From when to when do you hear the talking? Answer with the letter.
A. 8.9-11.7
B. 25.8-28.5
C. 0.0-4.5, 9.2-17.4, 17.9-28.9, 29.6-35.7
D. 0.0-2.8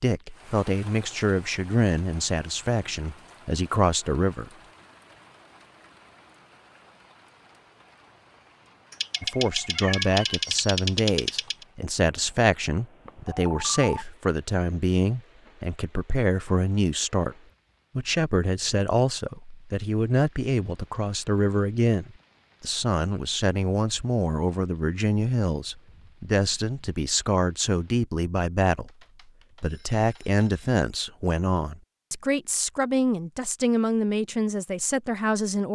C.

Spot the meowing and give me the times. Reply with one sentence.
You can hear the meowing from 8.9 to 11.7 s.